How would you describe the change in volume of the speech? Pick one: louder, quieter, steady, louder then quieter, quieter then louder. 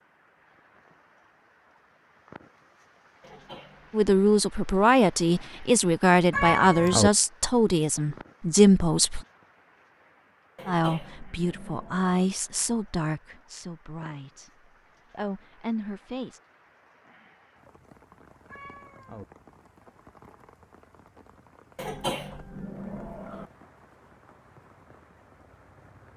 quieter.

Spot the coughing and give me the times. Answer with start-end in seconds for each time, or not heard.
3.2-4.0, 10.6-12.2, 21.8-23.4.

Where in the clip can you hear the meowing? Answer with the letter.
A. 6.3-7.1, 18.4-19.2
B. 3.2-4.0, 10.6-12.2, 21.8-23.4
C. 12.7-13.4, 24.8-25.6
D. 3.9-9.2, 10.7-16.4
A.